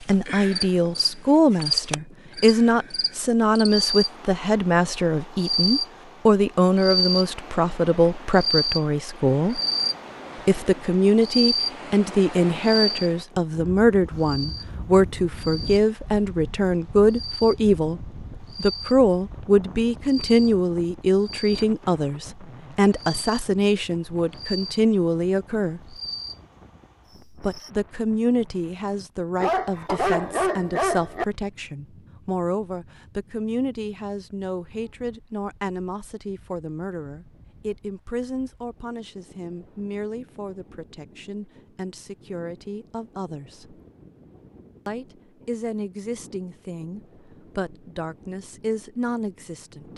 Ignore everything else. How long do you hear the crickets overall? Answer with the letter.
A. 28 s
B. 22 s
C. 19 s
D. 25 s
A.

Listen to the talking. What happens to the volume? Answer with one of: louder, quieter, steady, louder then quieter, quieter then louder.
quieter.